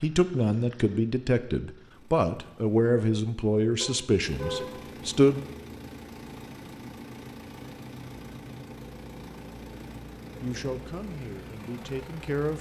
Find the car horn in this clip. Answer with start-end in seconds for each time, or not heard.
3.8-4.8.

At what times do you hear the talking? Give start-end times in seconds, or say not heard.
0.0-5.4, 10.4-12.5.